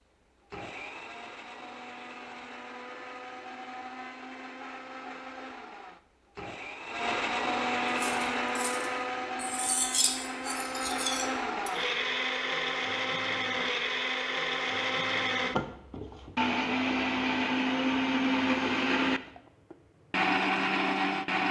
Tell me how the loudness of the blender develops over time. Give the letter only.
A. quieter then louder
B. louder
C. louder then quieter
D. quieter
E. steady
B.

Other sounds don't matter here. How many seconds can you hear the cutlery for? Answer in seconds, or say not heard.
4 s.